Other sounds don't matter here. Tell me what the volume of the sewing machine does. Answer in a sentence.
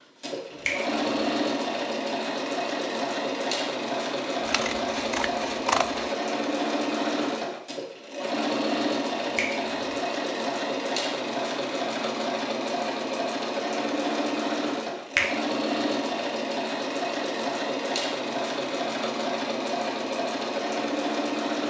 The loudness of the sewing machine stays about the same.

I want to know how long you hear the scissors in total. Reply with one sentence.
You can hear the scissors for 2 seconds altogether.